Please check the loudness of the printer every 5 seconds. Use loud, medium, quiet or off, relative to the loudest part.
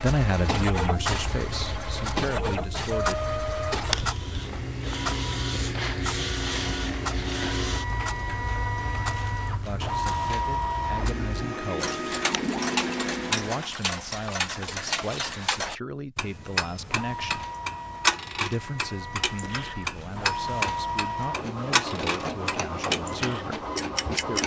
loud, loud, loud, medium, loud.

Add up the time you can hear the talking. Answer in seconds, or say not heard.
16 s.